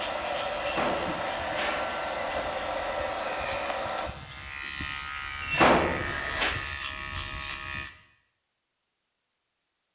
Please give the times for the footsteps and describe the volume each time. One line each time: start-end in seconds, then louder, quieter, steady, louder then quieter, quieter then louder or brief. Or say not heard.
not heard.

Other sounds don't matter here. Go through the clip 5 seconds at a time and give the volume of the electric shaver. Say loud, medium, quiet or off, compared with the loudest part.
medium, loud.